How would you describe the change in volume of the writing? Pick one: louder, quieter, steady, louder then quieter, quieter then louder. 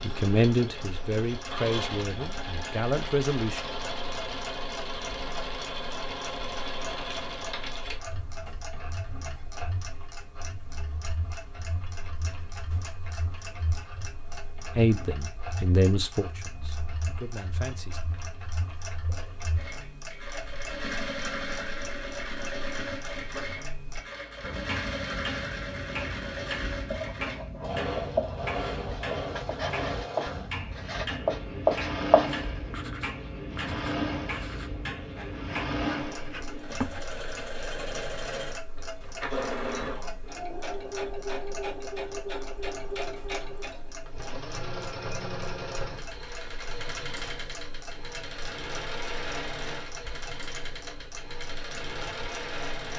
louder then quieter.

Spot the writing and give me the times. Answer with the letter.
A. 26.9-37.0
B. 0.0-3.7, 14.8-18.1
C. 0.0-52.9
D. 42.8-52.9
A.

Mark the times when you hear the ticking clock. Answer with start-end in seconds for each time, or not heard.
0.1-52.9.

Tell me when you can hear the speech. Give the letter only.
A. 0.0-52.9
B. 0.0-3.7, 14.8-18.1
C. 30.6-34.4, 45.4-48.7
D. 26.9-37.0
B.